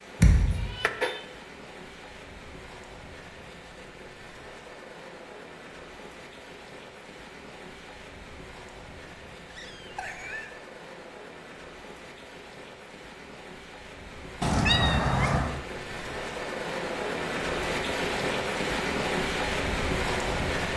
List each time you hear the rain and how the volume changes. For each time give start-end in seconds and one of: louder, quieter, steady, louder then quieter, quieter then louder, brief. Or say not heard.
0.0-20.7 louder.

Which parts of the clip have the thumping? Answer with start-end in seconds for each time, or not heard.
0.2-0.7.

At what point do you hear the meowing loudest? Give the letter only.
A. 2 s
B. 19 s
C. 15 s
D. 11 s
C.